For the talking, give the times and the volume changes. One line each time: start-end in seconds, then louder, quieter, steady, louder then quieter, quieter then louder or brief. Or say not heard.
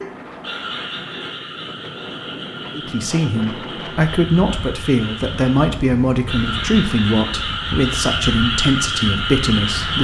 2.7-9.9 steady.